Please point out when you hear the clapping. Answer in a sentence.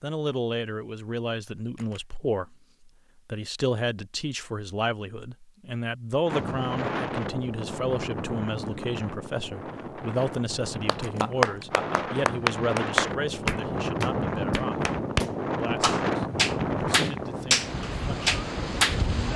You can hear the clapping from 10.8 to 19.3 s.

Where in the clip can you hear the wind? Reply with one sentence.
The wind can be heard from 6.2 to 19.3 s.